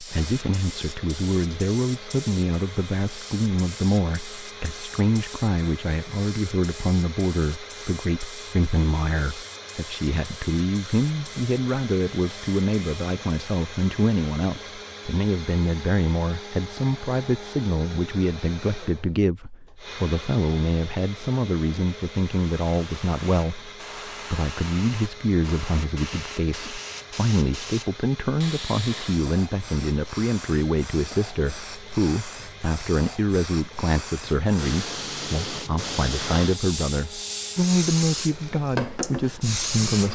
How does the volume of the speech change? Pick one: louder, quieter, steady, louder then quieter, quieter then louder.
steady.